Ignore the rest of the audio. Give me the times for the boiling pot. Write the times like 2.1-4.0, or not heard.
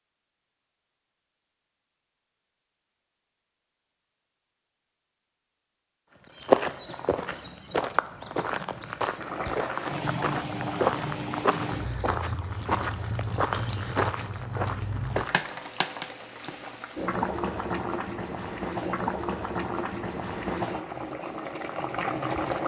9.2-22.6.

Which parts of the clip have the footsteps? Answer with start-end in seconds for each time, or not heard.
6.3-15.4.